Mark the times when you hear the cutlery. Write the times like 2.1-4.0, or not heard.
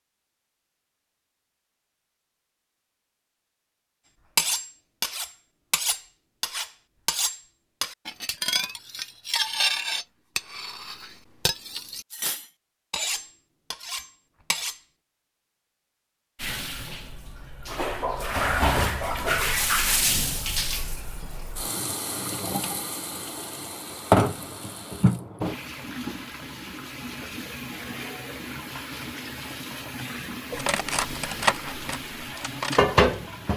4.3-14.8, 30.6-33.0.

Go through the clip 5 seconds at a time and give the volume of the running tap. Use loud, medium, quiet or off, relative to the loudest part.
off, off, off, loud, loud, medium, loud.